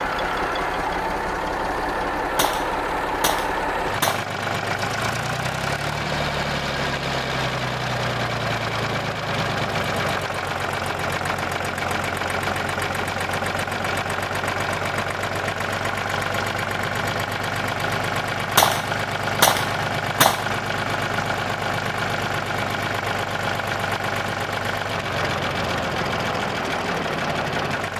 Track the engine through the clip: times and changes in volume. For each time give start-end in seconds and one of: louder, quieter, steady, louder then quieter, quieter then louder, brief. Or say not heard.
0.0-27.9 steady.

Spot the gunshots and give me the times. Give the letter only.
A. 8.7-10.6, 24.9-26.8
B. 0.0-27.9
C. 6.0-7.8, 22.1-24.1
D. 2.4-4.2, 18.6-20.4
D.